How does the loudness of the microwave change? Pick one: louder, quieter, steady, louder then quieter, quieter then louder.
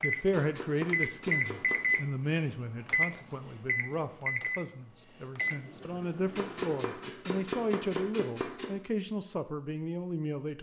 quieter.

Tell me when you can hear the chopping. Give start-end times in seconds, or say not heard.
0.3-2.0, 6.3-8.7.